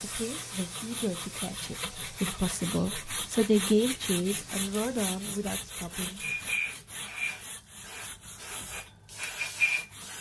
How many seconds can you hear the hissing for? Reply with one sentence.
You can hear the hissing for 10 seconds altogether.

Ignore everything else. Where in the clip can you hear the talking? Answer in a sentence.
You can hear the talking from 0.0 to 6.2 s.